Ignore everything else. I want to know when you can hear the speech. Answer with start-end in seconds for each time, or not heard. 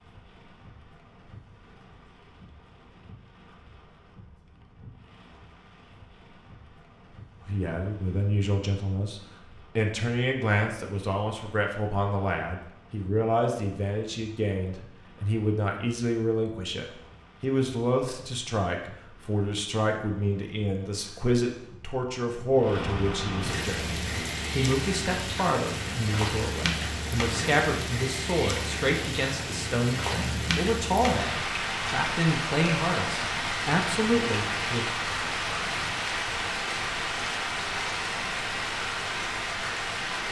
7.5-34.9.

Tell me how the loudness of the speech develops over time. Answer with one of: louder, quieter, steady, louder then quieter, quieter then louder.
steady.